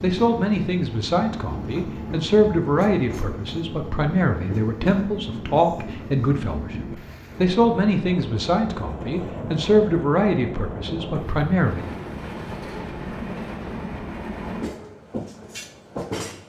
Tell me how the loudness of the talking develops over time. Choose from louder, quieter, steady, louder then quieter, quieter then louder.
steady.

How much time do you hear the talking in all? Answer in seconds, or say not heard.
12 s.